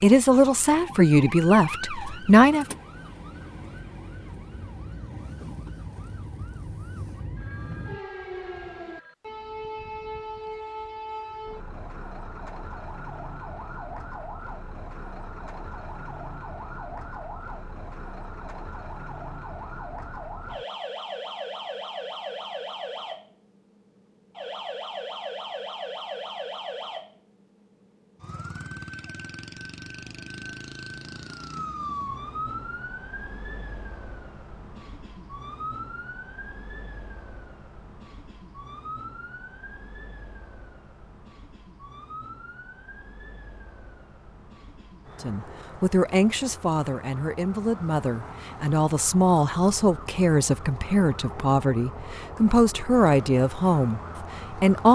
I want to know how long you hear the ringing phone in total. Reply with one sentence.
The ringing phone can be heard for 2 seconds in total.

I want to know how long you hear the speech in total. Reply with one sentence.
The speech can be heard for 12 seconds in total.